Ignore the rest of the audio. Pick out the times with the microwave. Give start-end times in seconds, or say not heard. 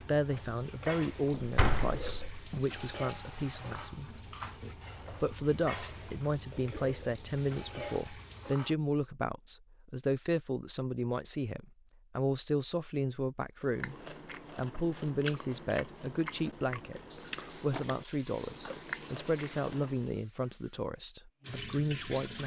not heard.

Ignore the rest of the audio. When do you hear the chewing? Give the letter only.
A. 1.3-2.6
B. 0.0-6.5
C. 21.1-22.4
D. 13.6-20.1
D.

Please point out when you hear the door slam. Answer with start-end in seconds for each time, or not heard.
1.3-2.6.